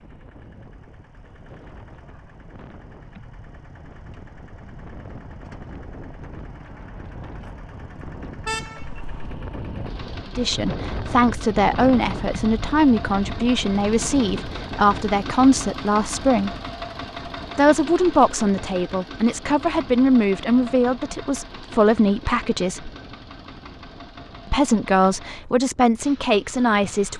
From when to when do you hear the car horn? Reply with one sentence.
The car horn can be heard from 8.4 to 8.8 s.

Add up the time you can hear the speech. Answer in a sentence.
You can hear the speech for 14 seconds altogether.